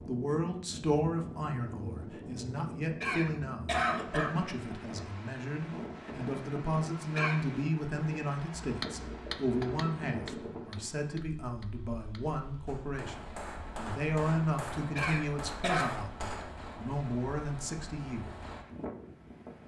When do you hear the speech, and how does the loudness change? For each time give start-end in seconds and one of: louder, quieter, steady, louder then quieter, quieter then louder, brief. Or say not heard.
0.0-18.4 steady.